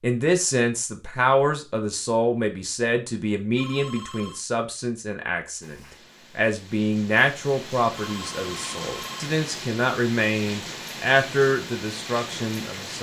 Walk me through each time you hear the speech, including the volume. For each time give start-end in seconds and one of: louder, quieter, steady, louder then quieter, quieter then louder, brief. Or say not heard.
0.0-5.8 quieter
6.3-12.9 quieter then louder.